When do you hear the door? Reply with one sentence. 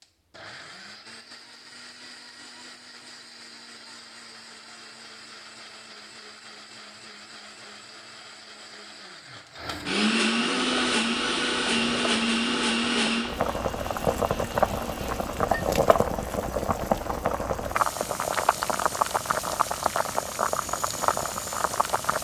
The door can't be heard in this clip.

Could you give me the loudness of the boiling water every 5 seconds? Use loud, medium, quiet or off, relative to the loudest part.
off, off, loud, loud, loud.